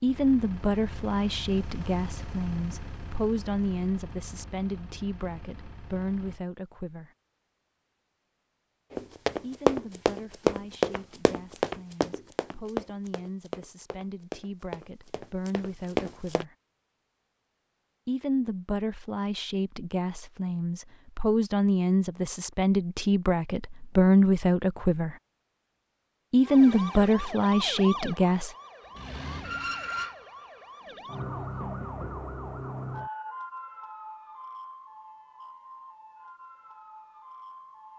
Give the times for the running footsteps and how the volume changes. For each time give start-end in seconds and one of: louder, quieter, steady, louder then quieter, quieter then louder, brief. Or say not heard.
8.9-16.4 quieter then louder.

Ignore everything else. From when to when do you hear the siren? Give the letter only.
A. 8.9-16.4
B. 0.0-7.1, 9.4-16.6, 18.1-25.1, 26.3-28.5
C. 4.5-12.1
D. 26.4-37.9
D.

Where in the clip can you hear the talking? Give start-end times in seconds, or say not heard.
0.0-7.1, 9.4-16.6, 18.1-25.1, 26.3-28.5.